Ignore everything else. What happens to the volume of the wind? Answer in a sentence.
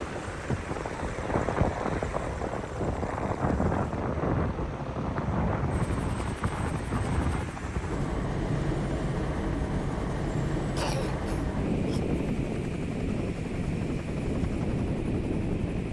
The loudness of the wind stays about the same.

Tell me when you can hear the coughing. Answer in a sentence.
You can hear the coughing from 10.8 to 12.0 s.